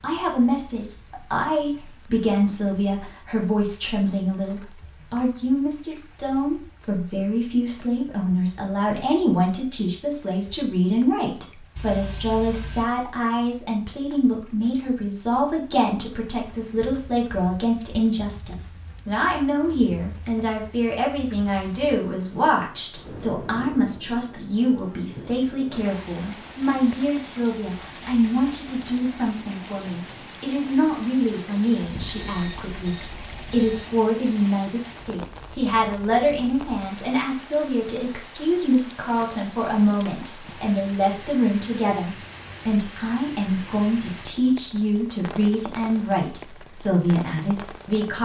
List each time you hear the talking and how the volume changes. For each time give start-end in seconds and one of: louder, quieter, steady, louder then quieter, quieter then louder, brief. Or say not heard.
0.0-48.1 steady.